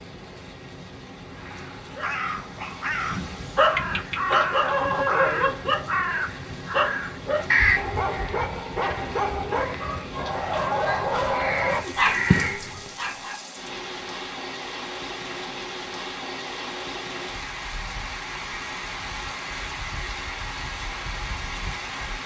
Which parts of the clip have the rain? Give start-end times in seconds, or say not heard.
0.0-22.2.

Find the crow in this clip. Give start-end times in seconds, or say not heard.
1.3-13.0.